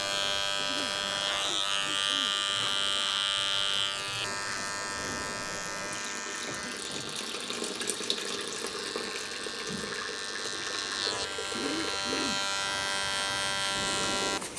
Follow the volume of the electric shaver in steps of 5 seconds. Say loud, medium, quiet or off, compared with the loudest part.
loud, medium, loud.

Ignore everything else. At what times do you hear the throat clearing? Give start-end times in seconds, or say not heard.
0.6-2.4, 6.5-7.3, 11.5-12.4.